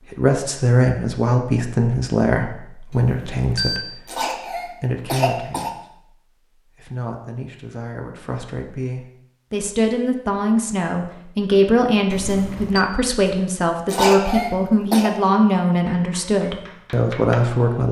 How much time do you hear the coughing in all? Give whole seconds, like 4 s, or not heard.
3 s.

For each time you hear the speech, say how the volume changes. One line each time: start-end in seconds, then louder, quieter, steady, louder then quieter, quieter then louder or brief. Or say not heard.
0.1-17.8 quieter then louder.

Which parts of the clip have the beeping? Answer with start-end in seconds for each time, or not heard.
2.9-3.8, 12.1-12.8.